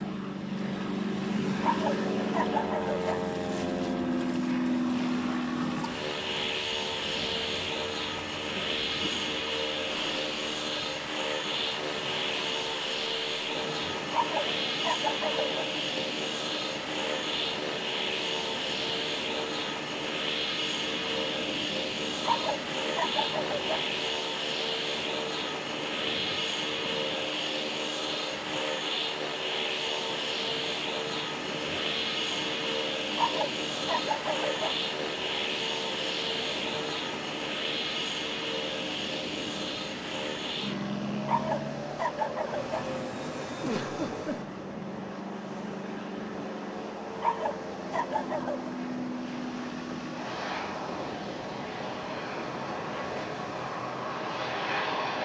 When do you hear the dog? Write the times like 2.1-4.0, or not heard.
1.6-3.2, 14.1-15.7, 22.2-23.9, 33.1-34.8, 41.2-42.9, 47.1-48.7.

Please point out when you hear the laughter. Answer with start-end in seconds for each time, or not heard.
43.6-44.5.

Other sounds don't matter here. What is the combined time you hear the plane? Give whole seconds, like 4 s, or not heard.
55 s.